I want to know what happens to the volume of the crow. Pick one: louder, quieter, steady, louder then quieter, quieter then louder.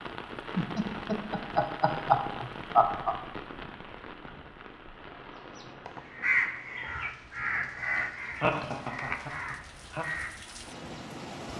quieter.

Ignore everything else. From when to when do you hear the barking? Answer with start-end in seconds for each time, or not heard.
not heard.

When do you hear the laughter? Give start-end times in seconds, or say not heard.
0.6-3.1, 8.0-10.1.